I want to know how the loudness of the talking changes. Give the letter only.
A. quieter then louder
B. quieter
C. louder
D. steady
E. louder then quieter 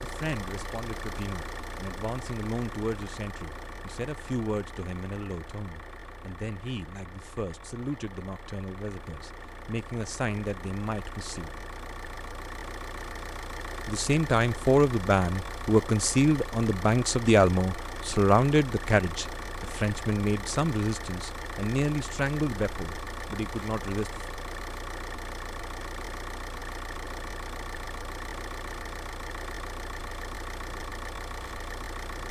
E.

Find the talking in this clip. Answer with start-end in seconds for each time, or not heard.
0.0-11.6, 13.8-24.2.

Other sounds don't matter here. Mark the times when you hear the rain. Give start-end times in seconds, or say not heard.
not heard.